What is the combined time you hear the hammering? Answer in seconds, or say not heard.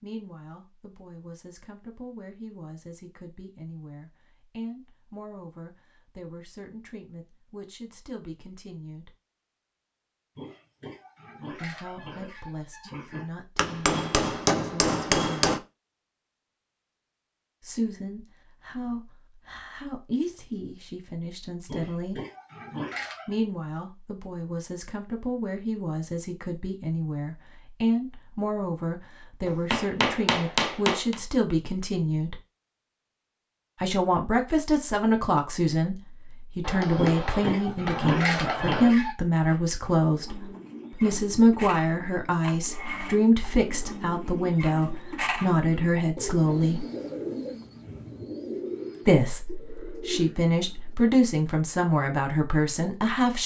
6 s.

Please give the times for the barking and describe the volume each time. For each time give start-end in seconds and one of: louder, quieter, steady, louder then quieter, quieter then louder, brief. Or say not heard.
not heard.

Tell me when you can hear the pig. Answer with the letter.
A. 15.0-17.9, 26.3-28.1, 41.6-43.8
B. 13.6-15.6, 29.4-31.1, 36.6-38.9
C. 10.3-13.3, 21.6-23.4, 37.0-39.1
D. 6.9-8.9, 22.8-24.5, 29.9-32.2
C.